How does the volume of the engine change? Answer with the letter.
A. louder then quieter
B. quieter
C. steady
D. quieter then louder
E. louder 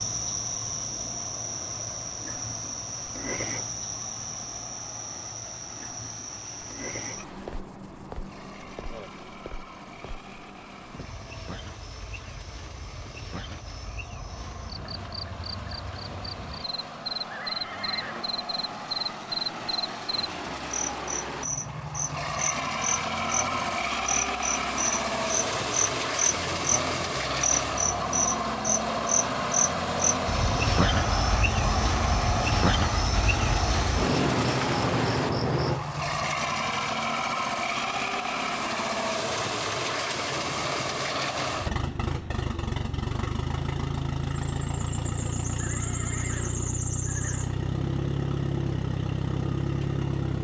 E.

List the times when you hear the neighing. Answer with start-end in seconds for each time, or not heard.
17.3-18.4, 45.5-47.5.